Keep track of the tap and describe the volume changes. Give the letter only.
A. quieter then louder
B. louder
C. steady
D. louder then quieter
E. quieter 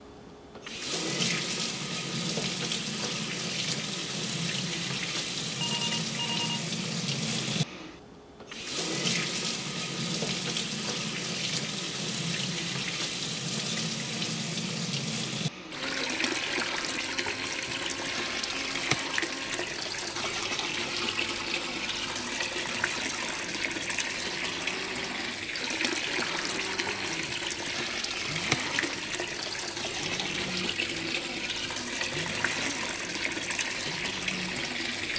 C.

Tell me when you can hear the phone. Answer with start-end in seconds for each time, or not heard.
5.5-6.7.